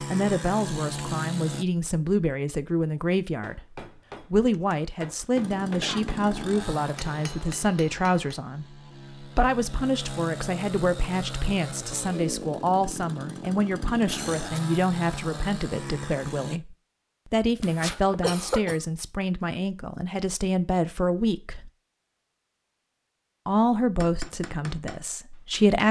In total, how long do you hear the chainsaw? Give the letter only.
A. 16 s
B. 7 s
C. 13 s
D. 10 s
C.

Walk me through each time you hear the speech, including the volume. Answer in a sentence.
You can hear the speech from 0.0 to 21.7 s, at a steady volume; and briefly from 23.4 to 25.8 s.